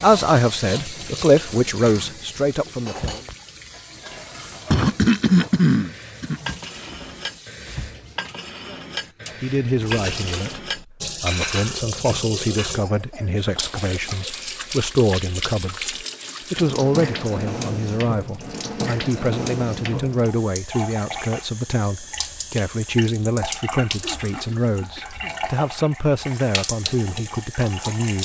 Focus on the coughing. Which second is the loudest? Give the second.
5 s.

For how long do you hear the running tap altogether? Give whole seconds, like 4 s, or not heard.
28 s.